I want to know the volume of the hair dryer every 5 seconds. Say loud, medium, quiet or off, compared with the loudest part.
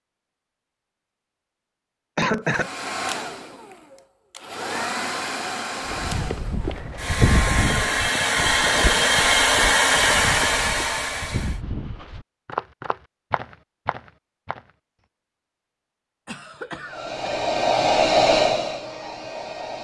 medium, loud, loud, loud.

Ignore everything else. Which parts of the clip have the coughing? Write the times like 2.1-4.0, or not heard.
2.1-2.7, 7.2-9.1, 16.2-17.2.